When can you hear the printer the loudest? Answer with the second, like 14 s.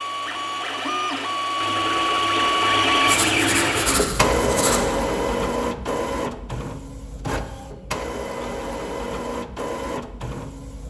3 s.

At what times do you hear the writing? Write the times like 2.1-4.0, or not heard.
3.0-4.8.